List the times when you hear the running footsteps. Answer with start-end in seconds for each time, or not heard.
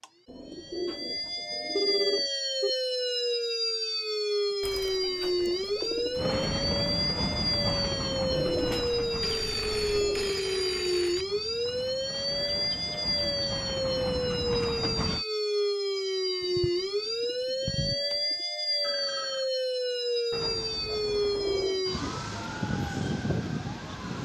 not heard.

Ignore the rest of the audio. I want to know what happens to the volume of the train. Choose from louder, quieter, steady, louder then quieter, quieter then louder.
quieter then louder.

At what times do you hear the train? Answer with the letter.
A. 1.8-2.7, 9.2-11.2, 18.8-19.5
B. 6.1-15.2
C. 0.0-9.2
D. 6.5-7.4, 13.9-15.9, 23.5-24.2
B.